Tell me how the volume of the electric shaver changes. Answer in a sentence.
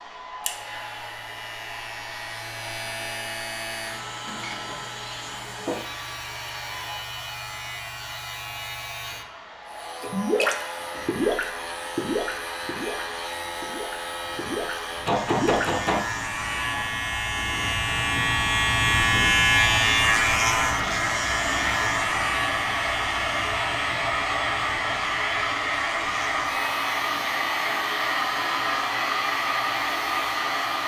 The loudness of the electric shaver goes up, then down.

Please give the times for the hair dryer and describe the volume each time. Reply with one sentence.
You can hear the hair dryer from 0.0 to 30.8 s, getting louder.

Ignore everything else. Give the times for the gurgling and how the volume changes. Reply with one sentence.
You can hear the gurgling from 10.0 to 15.7 s, getting quieter then louder.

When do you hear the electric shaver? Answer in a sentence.
The electric shaver can be heard from 0.2 to 30.8 s.